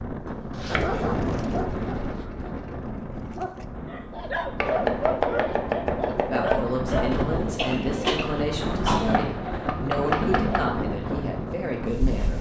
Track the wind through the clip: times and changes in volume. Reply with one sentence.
You can hear the wind from 0.0 to 12.3 s, getting quieter then louder.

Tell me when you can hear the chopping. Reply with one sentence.
You can hear the chopping from 0.2 to 2.2 s, from 4.6 to 6.6 s and from 9.1 to 10.7 s.